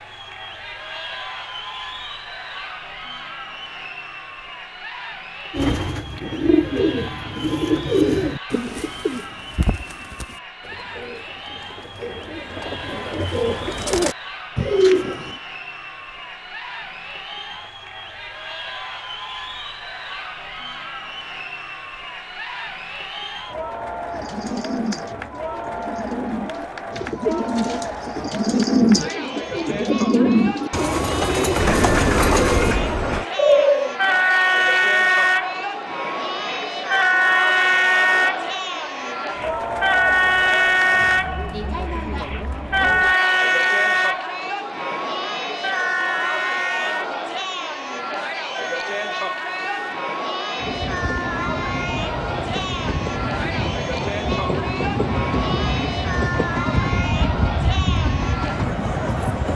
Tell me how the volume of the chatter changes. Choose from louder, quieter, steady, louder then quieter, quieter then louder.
louder.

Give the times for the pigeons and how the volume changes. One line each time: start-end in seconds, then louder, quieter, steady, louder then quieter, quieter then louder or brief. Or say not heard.
5.5-15.3 quieter then louder
24.1-34.0 louder.